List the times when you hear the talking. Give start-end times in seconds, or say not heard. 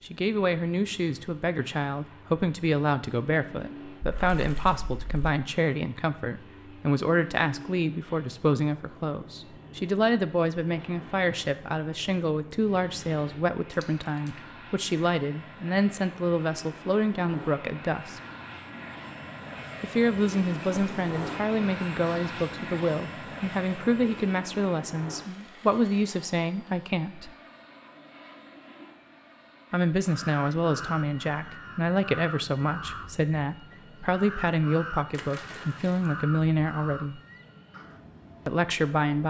0.0-18.2, 19.8-27.3, 29.7-37.2, 38.5-39.2.